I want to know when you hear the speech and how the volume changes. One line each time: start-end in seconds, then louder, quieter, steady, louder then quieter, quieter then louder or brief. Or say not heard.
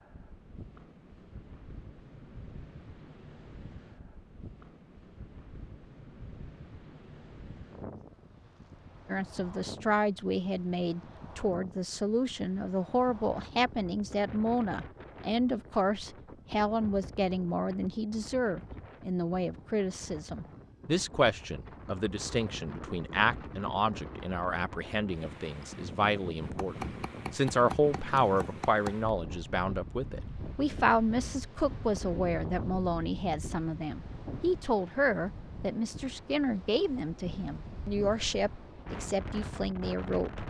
9.1-40.4 steady.